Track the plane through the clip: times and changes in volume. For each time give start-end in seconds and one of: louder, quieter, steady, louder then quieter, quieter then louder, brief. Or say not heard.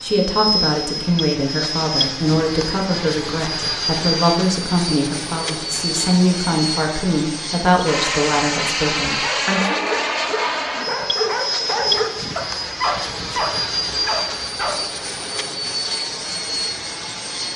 0.0-17.5 steady.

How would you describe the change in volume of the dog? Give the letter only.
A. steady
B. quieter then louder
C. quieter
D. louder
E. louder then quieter
A.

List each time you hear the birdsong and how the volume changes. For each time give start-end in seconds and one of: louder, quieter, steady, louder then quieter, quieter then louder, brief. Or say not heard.
not heard.